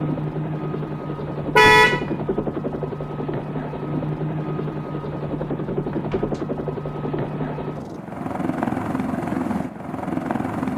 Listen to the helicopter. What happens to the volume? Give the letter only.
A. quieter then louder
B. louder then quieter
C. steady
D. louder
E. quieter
C.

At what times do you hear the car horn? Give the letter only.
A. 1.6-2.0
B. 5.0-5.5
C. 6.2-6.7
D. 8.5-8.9
A.